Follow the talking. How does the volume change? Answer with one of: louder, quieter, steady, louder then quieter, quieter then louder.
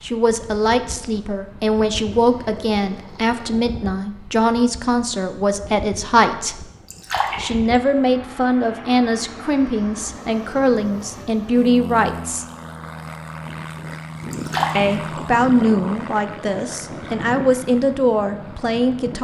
steady.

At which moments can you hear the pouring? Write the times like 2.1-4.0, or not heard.
2.1-3.6, 6.9-7.8, 14.3-15.2.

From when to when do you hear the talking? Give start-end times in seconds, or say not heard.
0.0-6.7, 7.4-12.4, 14.8-19.1.